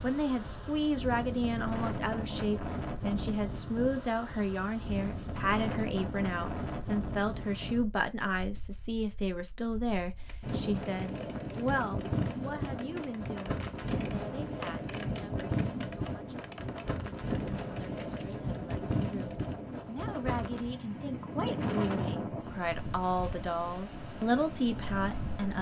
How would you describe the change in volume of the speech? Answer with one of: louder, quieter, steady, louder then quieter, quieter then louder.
quieter then louder.